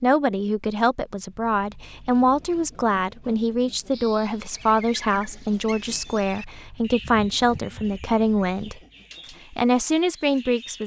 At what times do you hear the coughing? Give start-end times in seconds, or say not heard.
not heard.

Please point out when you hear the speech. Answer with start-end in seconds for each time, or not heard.
0.0-8.8, 9.5-10.8.